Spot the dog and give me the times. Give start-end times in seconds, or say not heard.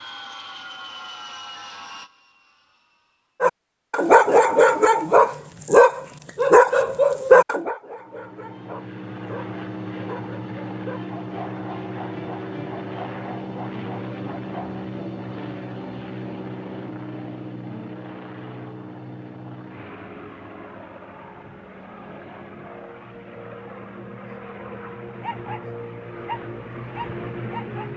3.4-14.8, 25.2-25.6, 26.2-27.9.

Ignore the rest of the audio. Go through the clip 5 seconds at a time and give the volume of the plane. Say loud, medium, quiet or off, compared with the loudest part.
medium, loud, loud, loud, medium, loud.